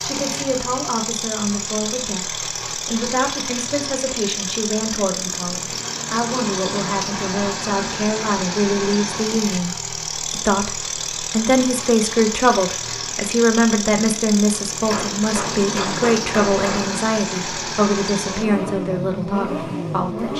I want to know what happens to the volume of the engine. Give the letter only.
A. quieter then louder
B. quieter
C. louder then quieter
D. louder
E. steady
E.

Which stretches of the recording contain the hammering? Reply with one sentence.
You can hear the hammering from 14.9 to 16.9 s.